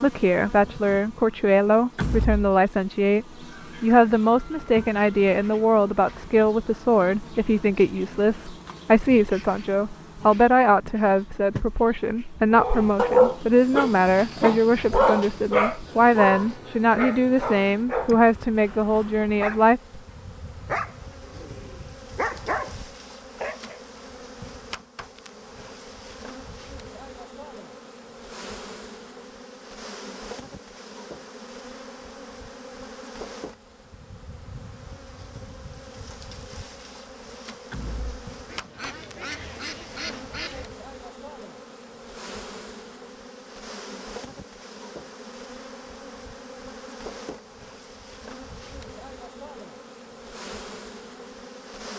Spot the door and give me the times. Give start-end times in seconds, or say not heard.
1.9-2.5, 37.7-38.2.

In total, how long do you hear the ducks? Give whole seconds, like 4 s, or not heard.
2 s.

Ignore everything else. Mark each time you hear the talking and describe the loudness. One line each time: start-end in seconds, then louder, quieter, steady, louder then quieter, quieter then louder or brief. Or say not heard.
0.0-19.8 steady.